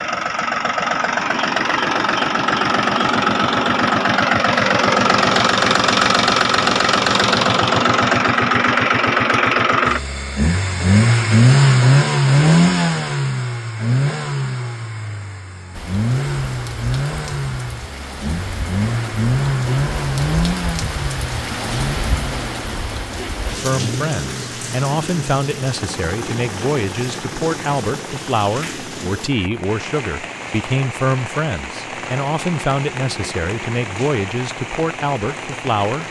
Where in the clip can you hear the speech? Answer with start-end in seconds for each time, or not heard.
23.5-36.0.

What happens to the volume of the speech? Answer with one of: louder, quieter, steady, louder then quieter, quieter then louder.
steady.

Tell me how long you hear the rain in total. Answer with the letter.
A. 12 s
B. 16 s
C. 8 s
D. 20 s
D.